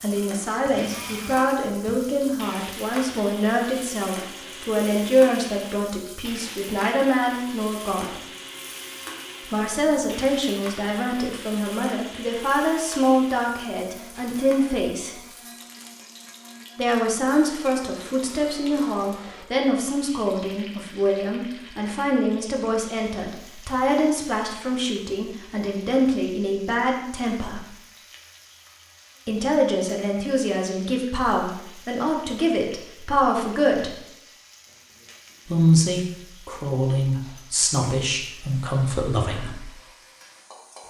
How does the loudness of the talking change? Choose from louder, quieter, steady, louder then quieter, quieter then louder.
steady.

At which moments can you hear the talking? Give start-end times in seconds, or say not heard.
0.0-8.2, 9.4-15.2, 16.8-27.7, 29.2-34.0, 35.5-39.7.